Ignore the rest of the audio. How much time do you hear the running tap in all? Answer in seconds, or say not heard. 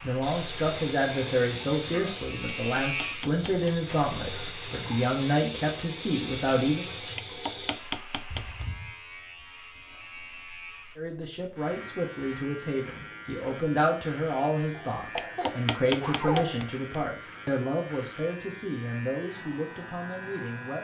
8 s.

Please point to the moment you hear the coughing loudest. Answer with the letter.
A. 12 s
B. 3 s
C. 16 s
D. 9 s
C.